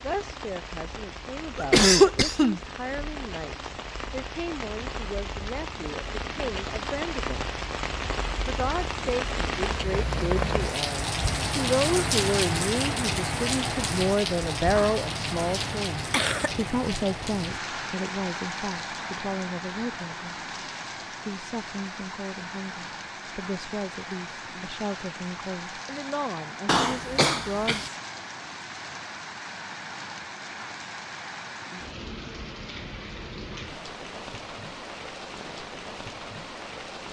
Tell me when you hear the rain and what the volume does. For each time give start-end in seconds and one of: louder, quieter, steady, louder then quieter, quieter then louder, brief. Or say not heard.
0.0-37.0 louder then quieter.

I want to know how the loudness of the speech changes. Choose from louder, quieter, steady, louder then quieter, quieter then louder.
louder then quieter.